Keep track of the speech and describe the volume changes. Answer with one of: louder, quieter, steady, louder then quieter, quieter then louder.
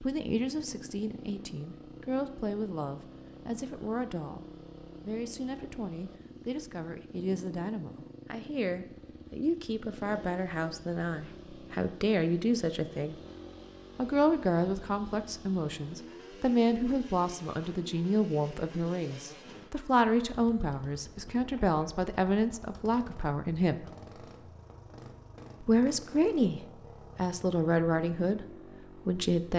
louder.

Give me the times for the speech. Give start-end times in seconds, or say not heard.
0.0-13.2, 13.9-23.9, 25.6-29.5.